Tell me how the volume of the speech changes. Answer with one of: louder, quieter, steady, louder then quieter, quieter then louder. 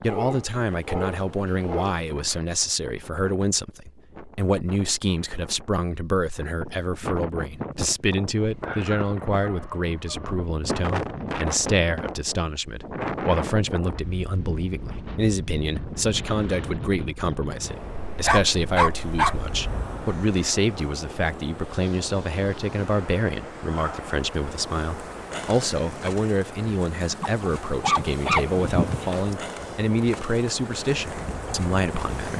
steady.